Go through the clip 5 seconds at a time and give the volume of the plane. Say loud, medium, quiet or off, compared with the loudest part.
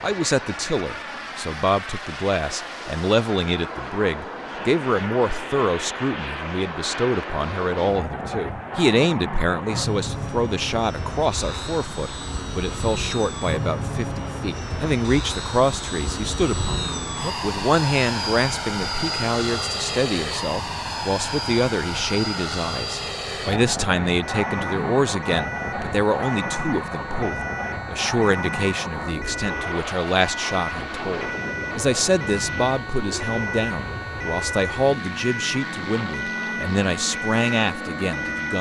medium, loud, loud, loud, loud, loud, medium, medium.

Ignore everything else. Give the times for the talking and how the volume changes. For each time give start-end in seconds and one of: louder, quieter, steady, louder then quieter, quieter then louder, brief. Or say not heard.
0.0-38.5 steady.